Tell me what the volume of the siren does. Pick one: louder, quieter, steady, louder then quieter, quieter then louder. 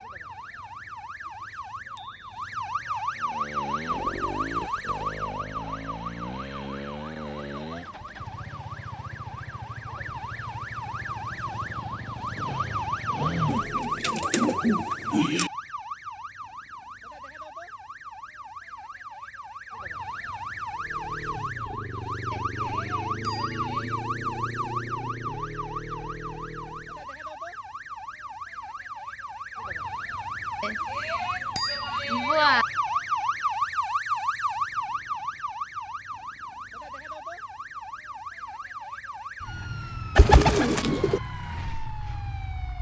steady.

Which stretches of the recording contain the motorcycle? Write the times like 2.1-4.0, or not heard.
3.1-14.1, 20.7-27.1.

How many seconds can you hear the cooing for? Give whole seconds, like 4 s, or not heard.
3 s.